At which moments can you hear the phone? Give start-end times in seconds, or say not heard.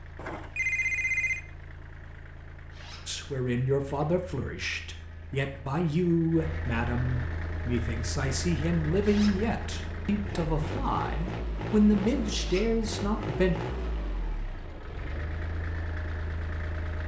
0.1-1.4.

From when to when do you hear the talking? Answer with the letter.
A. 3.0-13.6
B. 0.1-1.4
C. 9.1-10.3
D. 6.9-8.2
A.